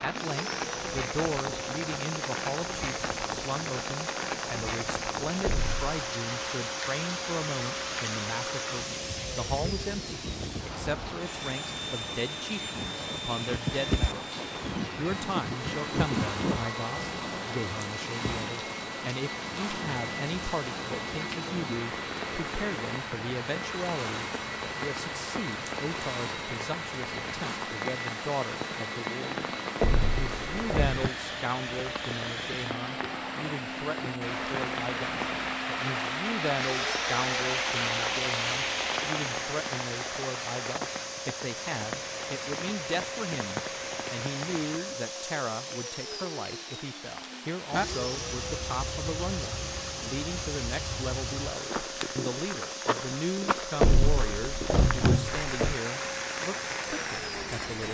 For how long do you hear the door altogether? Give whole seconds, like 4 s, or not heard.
4 s.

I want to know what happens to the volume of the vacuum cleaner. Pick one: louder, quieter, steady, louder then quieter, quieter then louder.
steady.